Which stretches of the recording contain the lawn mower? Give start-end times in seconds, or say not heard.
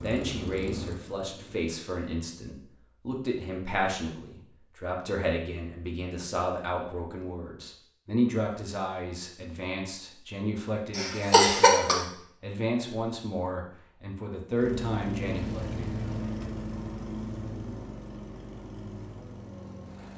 0.0-1.6, 14.6-20.1.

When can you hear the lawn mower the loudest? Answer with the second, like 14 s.
16 s.